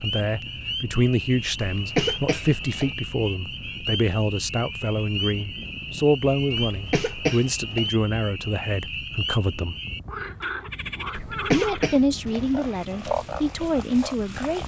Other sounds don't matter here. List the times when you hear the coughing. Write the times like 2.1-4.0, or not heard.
1.6-2.9, 6.5-7.9, 11.2-12.4.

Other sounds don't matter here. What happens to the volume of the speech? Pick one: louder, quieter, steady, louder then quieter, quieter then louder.
steady.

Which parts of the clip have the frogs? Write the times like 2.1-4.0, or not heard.
0.0-14.6.